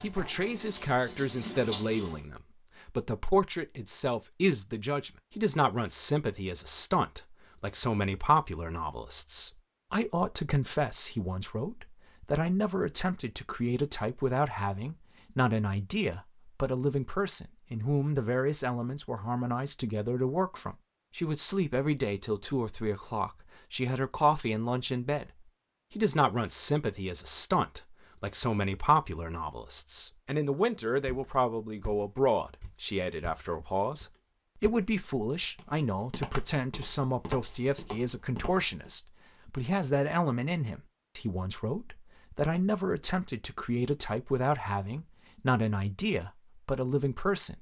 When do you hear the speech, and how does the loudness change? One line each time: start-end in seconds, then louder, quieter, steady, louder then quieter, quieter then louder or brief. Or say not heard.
0.0-47.5 steady.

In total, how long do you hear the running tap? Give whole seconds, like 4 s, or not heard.
2 s.